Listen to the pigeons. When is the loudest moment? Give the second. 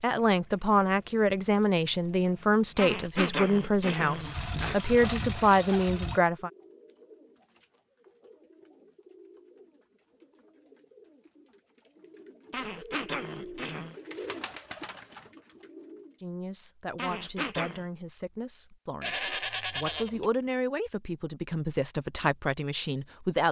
14 s.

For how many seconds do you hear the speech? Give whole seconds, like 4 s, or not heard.
14 s.